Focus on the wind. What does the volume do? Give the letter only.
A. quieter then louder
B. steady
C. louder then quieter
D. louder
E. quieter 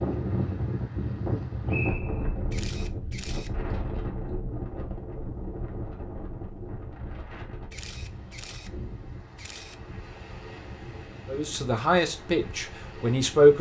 E.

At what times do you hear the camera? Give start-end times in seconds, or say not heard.
2.5-3.5, 7.7-8.7, 9.3-9.8.